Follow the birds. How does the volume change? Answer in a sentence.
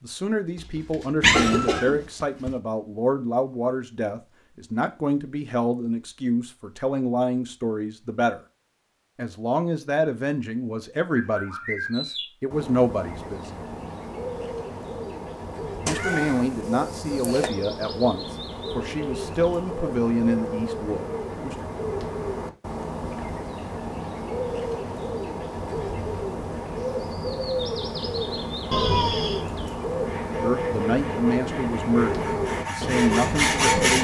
The volume of the birds goes up.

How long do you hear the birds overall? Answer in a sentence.
The birds can be heard for 23 seconds in total.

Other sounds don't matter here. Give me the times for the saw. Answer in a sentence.
The saw can be heard from 29.9 to 33.9 s.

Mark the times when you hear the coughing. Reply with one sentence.
The coughing can be heard from 0.6 to 2.0 s.